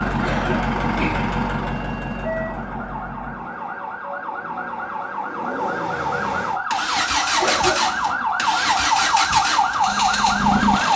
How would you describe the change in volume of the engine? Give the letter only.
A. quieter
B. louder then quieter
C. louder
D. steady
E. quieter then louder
E.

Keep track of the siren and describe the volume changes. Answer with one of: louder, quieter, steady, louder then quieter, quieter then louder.
louder.